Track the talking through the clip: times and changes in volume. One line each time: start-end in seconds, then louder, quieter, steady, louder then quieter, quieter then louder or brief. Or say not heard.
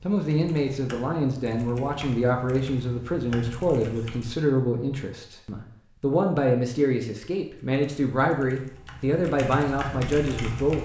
0.0-10.8 steady.